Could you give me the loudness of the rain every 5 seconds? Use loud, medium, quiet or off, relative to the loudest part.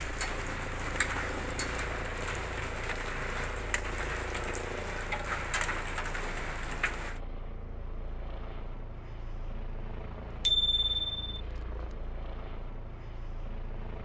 loud, loud, off.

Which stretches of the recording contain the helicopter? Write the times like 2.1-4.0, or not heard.
0.0-14.0.